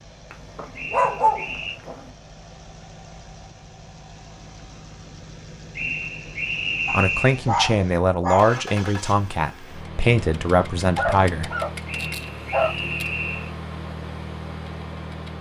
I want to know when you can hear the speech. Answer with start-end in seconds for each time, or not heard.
6.9-11.5.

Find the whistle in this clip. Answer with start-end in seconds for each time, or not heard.
0.8-1.8, 5.8-7.4, 11.8-13.5.